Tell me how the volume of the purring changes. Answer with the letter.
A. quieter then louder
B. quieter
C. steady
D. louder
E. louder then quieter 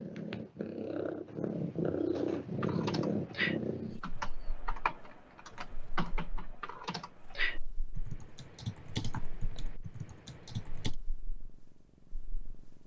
B.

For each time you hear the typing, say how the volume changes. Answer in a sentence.
You can hear the typing from 2.6 to 10.9 s, getting quieter.